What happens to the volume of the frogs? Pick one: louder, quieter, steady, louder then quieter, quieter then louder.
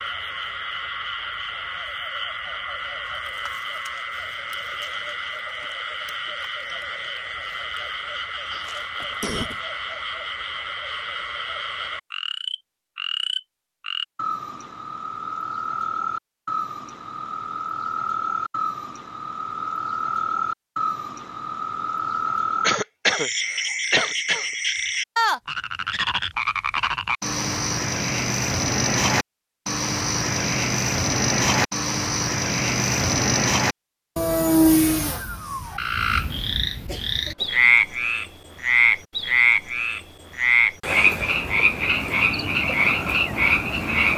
louder.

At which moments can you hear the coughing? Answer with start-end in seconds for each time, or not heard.
8.7-9.6, 22.6-24.4, 36.9-37.6.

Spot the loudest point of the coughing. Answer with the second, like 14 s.
23 s.